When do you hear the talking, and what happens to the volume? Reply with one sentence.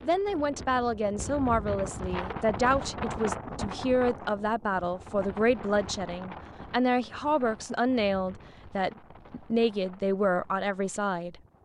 You can hear the talking from 0.0 to 11.3 s, at a steady volume.